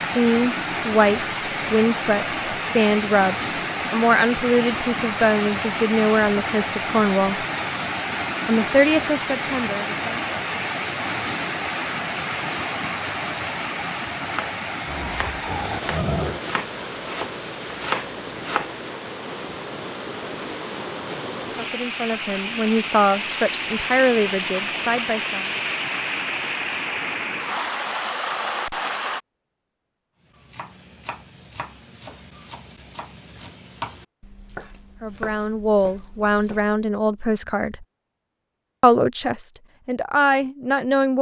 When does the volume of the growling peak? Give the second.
16 s.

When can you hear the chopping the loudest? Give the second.
18 s.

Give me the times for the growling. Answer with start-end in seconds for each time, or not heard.
14.8-16.4.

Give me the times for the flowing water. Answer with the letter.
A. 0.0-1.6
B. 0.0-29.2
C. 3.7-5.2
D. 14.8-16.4
B.